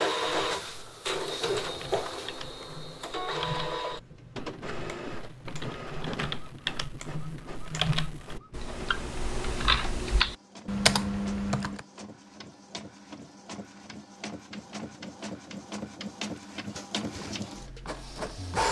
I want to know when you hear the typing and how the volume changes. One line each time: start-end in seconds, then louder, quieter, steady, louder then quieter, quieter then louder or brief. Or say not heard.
0.2-11.8 louder.